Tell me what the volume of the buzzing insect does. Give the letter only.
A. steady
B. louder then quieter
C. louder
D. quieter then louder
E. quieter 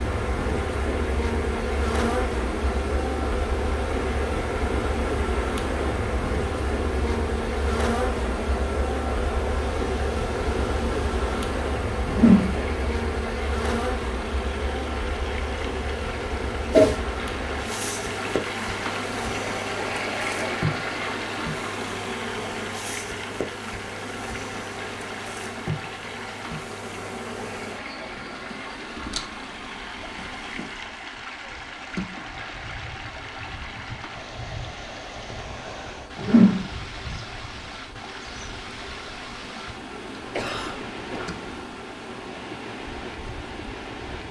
E.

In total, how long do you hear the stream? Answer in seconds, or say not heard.
44 s.